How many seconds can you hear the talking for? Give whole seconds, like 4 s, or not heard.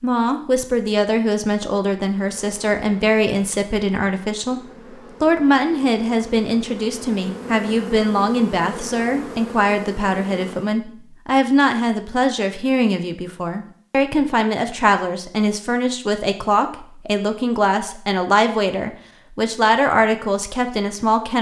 21 s.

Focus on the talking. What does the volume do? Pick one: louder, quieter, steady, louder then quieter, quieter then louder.
steady.